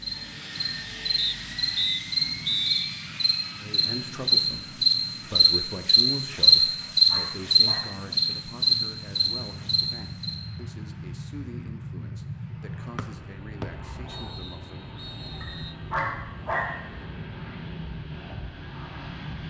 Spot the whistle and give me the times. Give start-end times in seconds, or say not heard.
1.1-2.9, 12.9-15.8.